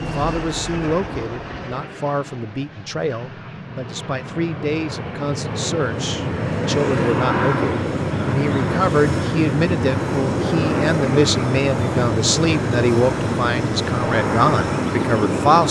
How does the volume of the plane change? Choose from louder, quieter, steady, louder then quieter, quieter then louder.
louder.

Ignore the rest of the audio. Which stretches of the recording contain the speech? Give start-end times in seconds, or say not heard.
0.0-15.6.